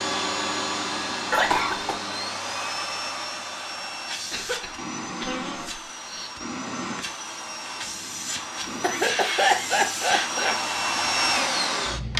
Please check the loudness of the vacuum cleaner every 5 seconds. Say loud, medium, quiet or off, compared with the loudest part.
medium, medium, loud.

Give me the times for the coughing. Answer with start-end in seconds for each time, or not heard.
1.3-2.0, 4.3-6.3, 8.8-10.6.